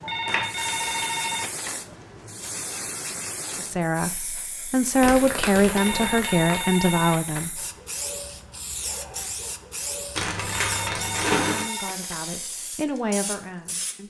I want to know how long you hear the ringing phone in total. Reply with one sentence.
The ringing phone can be heard for 5 seconds in total.